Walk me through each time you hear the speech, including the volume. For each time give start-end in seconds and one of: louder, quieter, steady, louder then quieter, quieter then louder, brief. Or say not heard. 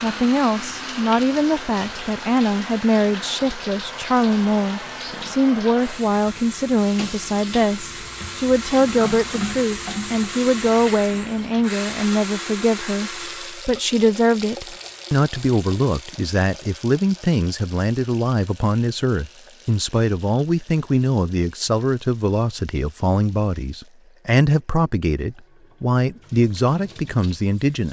0.0-27.8 steady.